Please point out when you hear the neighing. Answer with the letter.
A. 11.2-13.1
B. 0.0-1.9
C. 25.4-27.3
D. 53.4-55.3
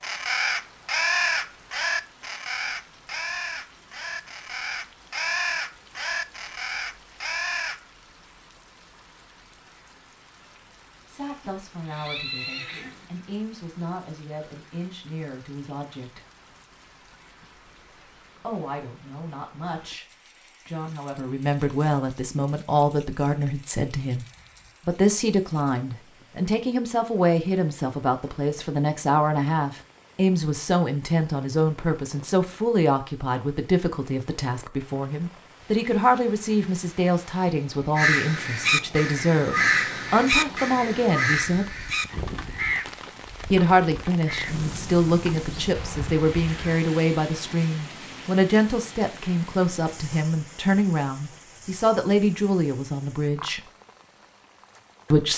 A.